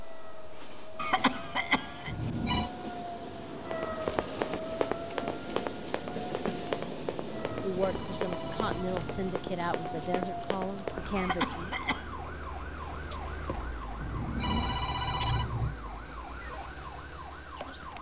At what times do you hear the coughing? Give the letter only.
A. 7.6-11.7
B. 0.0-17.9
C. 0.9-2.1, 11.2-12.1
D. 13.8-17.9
C.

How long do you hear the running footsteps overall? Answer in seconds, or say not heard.
7 s.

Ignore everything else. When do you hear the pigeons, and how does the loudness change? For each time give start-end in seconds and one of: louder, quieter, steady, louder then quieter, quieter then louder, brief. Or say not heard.
not heard.